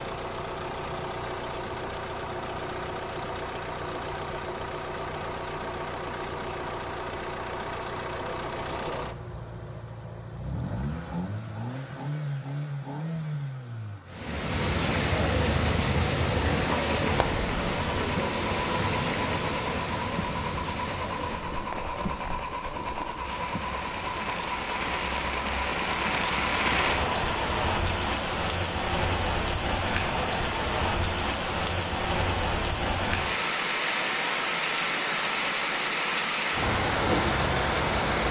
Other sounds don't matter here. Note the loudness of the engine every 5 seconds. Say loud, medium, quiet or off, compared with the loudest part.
loud, loud, loud, loud, loud, loud, off, off.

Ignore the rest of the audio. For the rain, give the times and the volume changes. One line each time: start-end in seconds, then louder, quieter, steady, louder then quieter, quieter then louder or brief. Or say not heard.
14.1-38.2 quieter then louder.